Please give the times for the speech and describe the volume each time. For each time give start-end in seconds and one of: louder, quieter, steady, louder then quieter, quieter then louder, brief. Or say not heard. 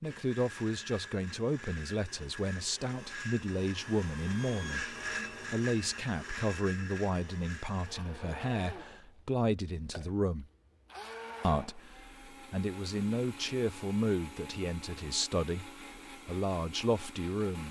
0.0-10.4 steady
11.4-17.6 louder.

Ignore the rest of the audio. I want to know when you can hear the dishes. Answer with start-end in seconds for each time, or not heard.
not heard.